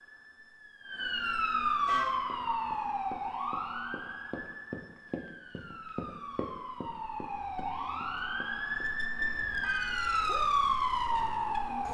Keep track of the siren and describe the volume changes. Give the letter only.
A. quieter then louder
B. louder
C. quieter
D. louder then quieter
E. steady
A.